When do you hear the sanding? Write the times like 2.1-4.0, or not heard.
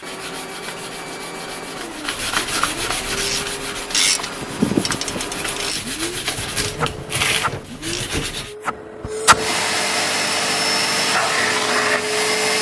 0.0-8.6.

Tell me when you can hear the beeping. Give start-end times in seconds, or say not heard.
not heard.